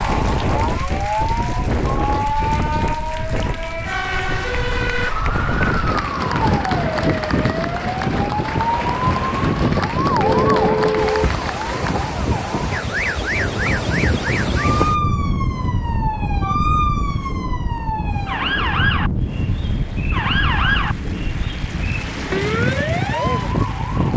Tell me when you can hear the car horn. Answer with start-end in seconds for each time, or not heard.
10.2-11.3.